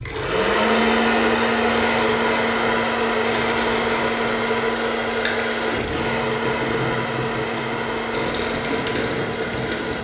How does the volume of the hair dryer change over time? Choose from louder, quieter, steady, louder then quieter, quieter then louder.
quieter.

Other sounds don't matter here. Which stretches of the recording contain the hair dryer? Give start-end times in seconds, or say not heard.
0.0-9.9.